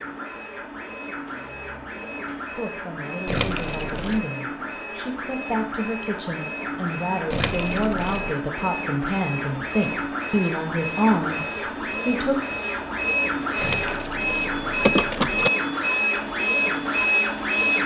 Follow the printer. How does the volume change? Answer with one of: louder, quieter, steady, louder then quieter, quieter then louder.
louder.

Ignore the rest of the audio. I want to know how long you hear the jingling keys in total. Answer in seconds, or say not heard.
4 s.